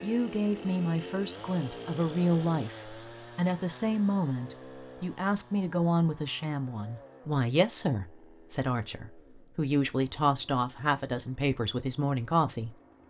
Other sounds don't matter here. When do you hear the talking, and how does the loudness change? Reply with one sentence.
The talking can be heard from 0.0 to 12.8 s, at a steady volume.